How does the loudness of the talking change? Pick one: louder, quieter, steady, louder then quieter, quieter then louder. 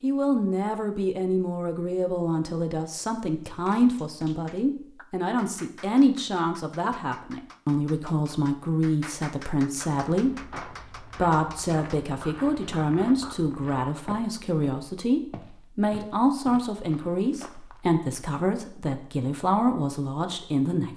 steady.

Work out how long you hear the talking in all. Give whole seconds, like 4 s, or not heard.
21 s.